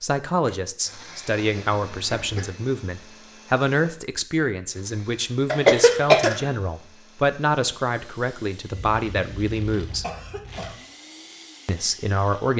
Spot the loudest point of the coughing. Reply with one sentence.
The volume of the coughing peaks at 6 seconds.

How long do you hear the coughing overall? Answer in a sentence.
The coughing can be heard for 4 seconds in total.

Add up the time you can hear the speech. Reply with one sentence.
The speech can be heard for 11 seconds in total.